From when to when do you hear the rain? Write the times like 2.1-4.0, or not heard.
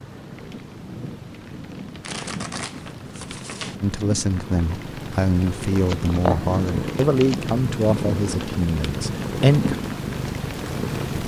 0.0-11.2.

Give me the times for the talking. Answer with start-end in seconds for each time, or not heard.
3.8-9.8.